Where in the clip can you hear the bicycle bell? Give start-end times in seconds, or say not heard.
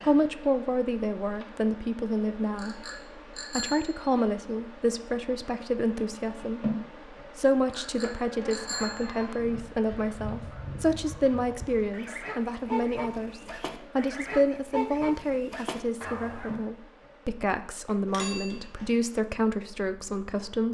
2.5-4.0, 7.7-9.2, 18.1-18.9.